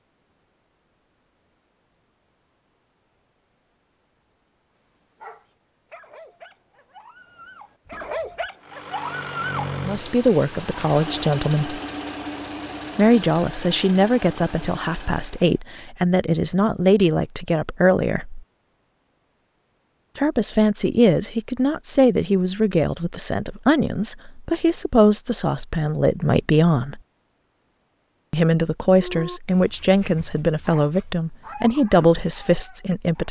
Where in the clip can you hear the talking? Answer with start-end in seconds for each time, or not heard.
9.8-11.8, 12.9-18.4, 20.1-27.0, 28.3-33.2.